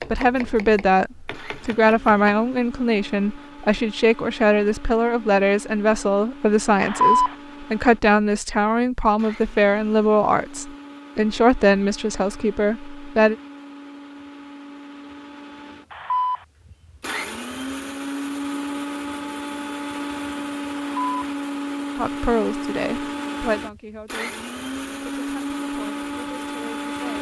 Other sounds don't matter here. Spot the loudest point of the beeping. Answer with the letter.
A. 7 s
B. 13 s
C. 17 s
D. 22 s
A.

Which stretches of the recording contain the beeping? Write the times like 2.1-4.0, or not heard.
6.8-7.3, 15.9-16.4, 20.8-21.2.